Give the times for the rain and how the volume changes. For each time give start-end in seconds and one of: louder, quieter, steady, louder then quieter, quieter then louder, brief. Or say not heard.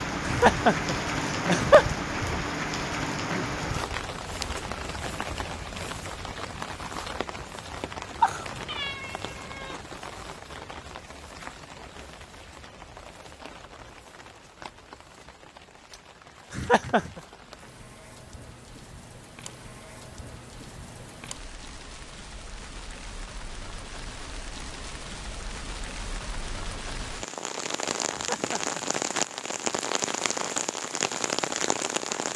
0.0-32.3 quieter then louder.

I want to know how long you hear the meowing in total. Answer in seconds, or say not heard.
2 s.